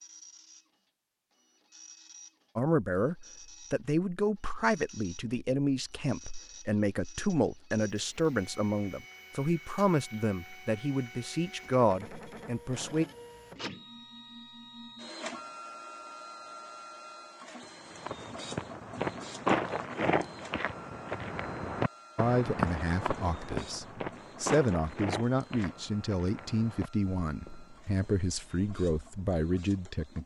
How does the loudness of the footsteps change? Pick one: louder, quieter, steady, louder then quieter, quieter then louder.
quieter.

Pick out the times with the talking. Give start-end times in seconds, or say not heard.
2.5-13.1, 22.1-30.2.